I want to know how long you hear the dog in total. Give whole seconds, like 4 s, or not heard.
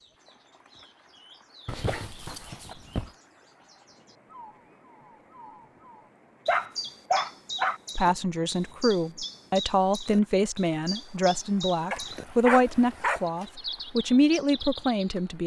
4 s.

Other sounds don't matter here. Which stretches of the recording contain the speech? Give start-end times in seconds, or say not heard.
8.0-15.4.